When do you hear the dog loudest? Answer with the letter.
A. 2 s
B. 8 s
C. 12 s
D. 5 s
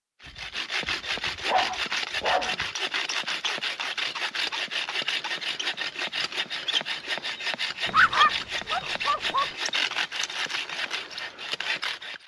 B.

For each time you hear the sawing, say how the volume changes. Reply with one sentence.
You can hear the sawing from 0.2 to 12.2 s, at a steady volume.